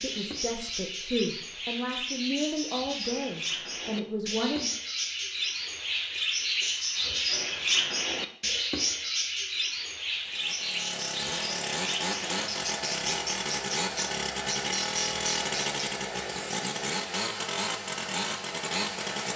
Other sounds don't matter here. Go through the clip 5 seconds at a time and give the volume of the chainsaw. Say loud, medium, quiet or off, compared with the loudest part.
off, off, loud, loud.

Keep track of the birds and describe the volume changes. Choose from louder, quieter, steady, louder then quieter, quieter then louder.
louder then quieter.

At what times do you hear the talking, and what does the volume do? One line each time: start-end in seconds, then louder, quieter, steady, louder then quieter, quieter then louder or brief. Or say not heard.
0.0-4.7 steady.